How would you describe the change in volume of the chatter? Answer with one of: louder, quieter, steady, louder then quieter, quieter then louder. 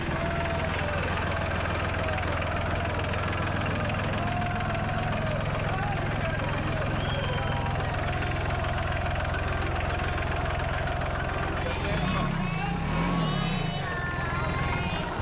steady.